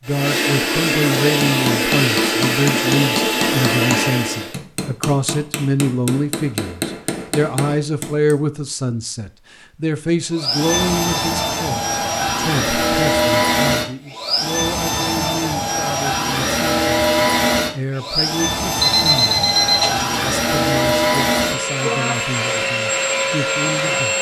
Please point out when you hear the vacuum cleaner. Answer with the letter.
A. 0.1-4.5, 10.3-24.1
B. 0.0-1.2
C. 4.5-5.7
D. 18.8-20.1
A.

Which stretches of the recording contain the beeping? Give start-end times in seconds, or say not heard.
18.8-20.1.